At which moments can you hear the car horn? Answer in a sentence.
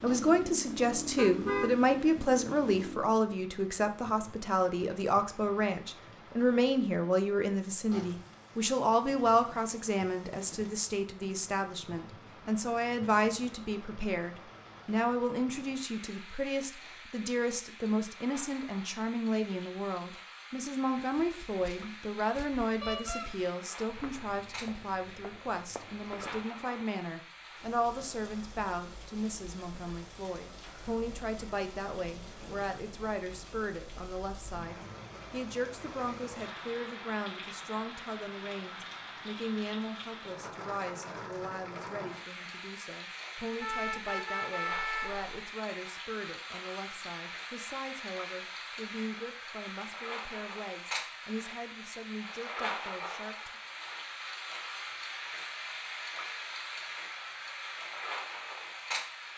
You can hear the car horn from 1.1 to 1.8 s, from 22.8 to 23.2 s and from 43.6 to 45.2 s.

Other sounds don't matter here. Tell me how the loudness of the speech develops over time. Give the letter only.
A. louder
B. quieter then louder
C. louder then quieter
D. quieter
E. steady
D.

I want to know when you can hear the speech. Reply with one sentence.
The speech can be heard from 0.0 to 53.6 s.